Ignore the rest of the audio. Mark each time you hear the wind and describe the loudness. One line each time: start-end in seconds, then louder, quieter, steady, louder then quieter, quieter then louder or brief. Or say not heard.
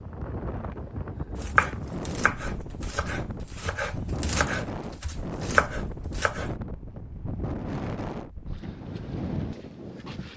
0.0-10.3 steady.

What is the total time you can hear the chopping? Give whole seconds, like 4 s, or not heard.
5 s.